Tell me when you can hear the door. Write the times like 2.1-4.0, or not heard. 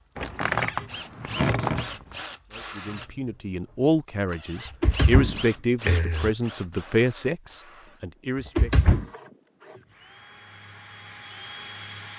0.1-1.9, 4.7-6.3, 8.6-9.1.